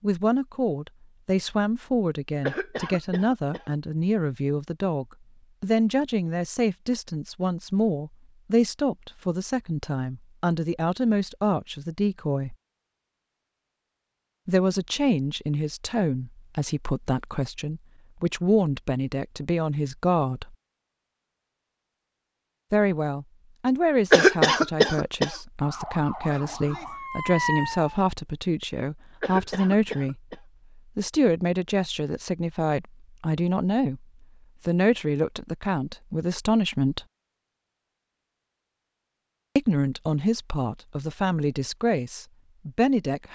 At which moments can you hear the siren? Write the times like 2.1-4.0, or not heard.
25.6-28.1.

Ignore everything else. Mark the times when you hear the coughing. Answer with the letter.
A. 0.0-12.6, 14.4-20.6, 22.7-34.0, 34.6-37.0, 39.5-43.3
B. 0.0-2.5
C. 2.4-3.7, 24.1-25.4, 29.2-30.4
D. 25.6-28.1
C.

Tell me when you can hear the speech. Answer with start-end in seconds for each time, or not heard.
0.0-12.6, 14.4-20.6, 22.7-34.0, 34.6-37.0, 39.5-43.3.